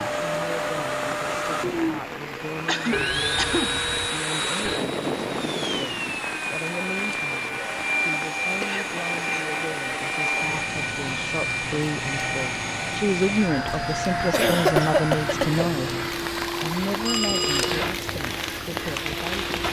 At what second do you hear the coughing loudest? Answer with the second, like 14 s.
15 s.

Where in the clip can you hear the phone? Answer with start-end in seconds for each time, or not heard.
2.9-4.8, 16.4-17.9.